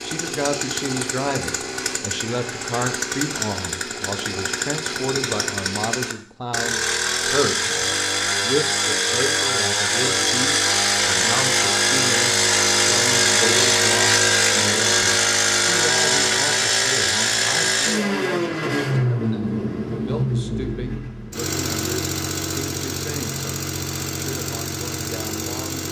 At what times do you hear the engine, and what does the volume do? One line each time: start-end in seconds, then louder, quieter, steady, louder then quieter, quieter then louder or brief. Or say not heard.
0.0-25.8 louder then quieter.